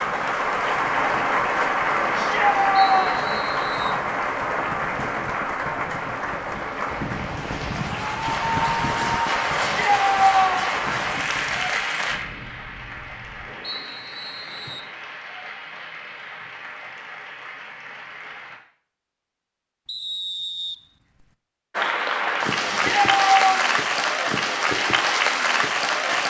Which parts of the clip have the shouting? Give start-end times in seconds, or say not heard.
2.1-3.4, 9.6-10.8, 22.6-23.6.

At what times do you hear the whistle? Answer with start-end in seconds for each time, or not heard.
2.8-4.0, 13.6-14.9, 19.9-21.3.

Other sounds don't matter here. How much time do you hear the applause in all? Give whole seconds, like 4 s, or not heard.
23 s.